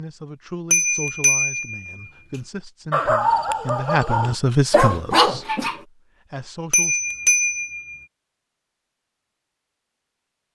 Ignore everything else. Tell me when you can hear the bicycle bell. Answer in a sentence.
The bicycle bell can be heard from 0.7 to 2.0 s and from 6.7 to 8.0 s.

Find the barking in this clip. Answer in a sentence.
You can hear the barking from 2.9 to 5.8 s.